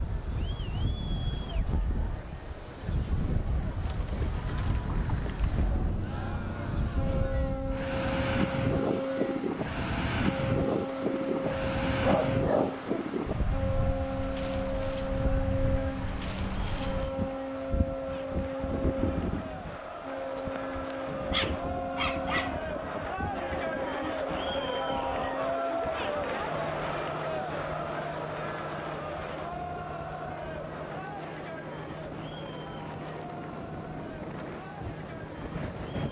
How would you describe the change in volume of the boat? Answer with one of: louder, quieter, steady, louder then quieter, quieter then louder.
quieter.